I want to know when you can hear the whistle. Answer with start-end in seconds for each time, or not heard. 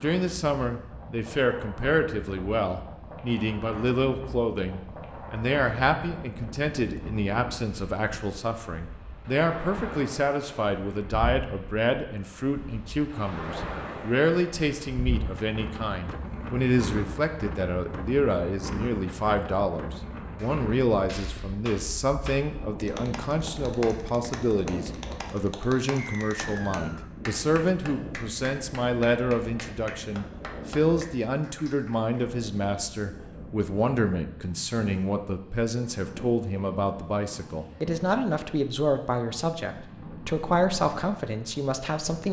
25.9-27.1.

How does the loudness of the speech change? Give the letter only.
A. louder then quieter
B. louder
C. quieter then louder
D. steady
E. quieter
D.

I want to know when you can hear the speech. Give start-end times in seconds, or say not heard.
0.0-42.2.